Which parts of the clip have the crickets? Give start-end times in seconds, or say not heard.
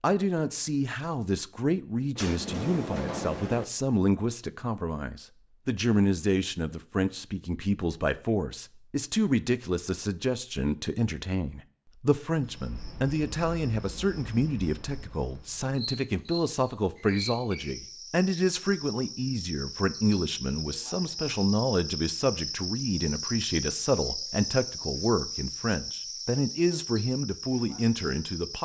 12.3-28.6.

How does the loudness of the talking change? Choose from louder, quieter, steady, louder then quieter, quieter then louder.
steady.